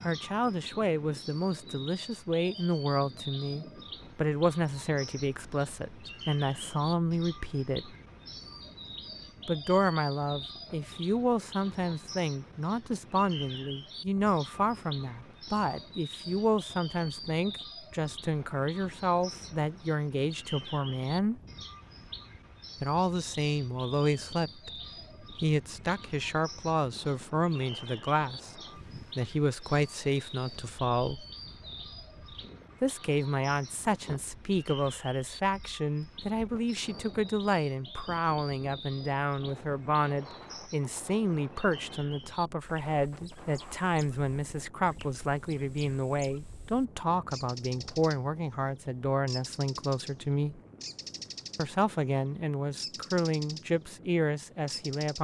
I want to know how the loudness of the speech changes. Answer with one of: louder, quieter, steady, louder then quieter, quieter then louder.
steady.